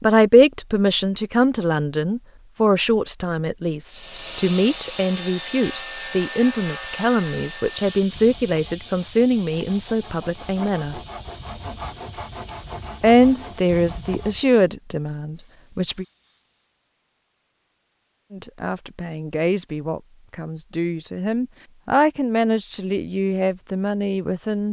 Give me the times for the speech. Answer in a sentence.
You can hear the speech from 0.0 to 11.0 s, from 13.0 to 16.1 s and from 18.3 to 24.6 s.